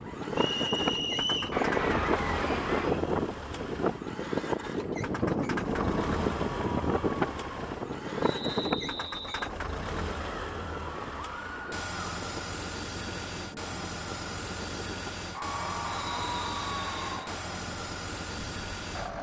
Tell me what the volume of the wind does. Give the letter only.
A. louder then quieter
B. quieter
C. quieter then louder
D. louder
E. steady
B.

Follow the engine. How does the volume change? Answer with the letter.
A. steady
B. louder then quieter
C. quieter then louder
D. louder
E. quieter
A.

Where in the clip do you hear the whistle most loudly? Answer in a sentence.
The volume of the whistle peaks at 1 second.